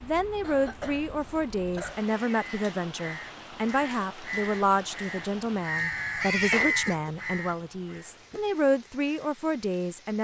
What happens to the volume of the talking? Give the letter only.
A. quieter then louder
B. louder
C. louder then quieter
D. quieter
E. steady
E.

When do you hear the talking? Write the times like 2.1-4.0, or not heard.
0.0-10.1.